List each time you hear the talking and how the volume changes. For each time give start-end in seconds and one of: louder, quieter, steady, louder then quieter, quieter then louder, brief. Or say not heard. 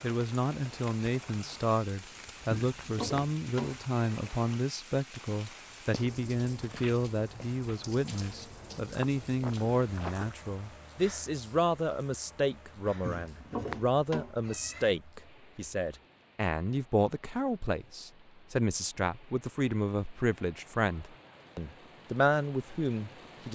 0.0-23.5 steady.